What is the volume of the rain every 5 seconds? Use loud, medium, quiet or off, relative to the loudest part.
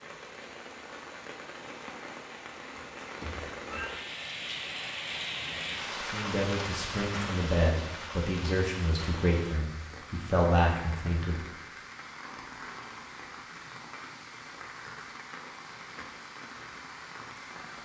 loud, loud, medium, medium.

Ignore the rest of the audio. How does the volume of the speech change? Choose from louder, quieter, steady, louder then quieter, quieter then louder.
louder.